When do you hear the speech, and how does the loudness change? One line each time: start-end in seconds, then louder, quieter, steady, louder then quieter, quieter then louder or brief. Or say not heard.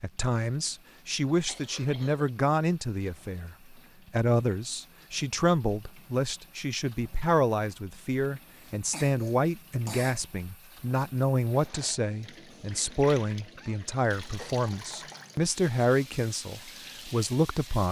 0.0-17.8 steady.